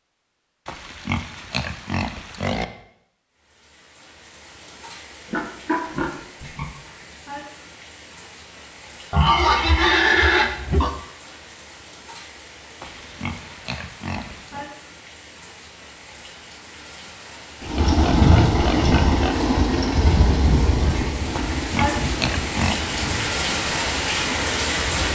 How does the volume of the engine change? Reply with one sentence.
The loudness of the engine goes down.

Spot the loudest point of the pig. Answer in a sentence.
The volume of the pig peaks at 10 seconds.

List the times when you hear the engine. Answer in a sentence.
The engine can be heard from 17.6 to 25.1 s.